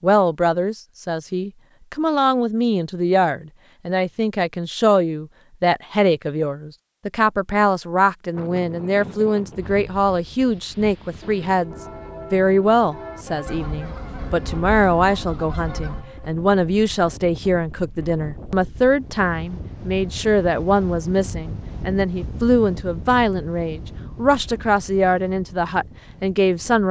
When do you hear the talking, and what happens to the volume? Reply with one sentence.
The talking can be heard from 0.0 to 11.7 s, at a steady volume; and from 12.3 to 26.8 s, at a steady volume.